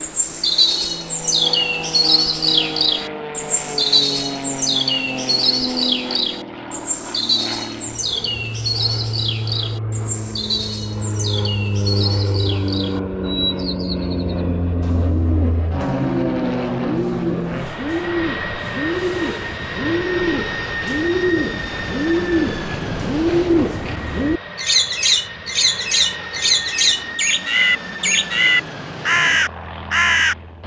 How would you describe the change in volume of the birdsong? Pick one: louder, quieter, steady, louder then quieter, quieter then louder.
quieter then louder.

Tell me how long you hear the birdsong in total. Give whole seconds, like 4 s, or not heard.
30 s.